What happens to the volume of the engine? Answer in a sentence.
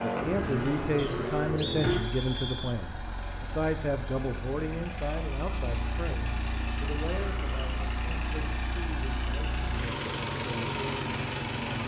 The loudness of the engine goes down, then up.